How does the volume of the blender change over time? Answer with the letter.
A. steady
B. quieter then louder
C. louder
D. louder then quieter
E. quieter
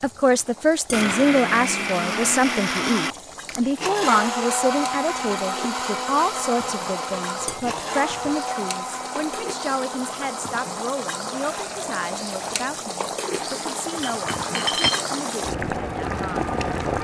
E.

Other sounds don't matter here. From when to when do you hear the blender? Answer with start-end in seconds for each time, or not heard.
0.0-16.9.